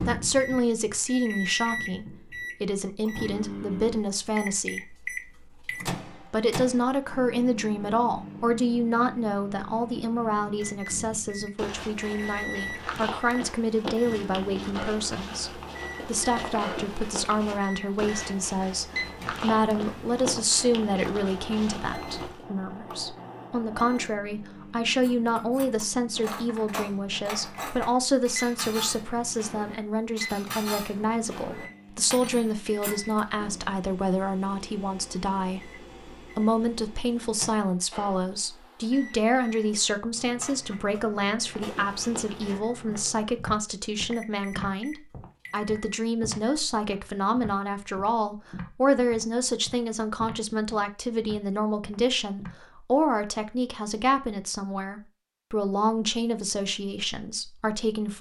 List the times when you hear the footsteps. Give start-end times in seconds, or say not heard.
11.1-22.4, 41.4-52.5.